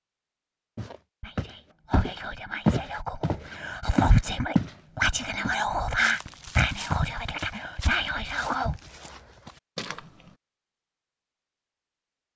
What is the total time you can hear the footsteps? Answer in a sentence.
The footsteps can be heard for 9 seconds in total.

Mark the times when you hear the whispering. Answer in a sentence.
You can hear the whispering from 1.2 to 8.8 s.